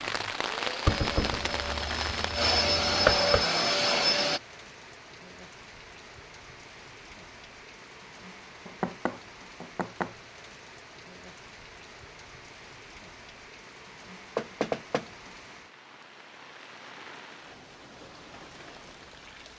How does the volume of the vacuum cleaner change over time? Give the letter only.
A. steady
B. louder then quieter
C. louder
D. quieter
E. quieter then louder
C.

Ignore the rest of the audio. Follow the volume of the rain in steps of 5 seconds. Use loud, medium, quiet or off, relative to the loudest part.
loud, quiet, quiet, quiet.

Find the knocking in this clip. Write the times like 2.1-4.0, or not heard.
0.8-3.5, 8.7-10.2, 14.3-15.1.